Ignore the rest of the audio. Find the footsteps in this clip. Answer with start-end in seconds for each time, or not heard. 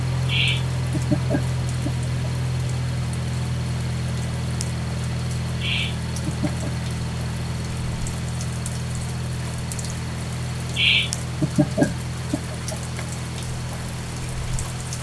not heard.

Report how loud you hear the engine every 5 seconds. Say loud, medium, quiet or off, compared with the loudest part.
loud, loud, medium.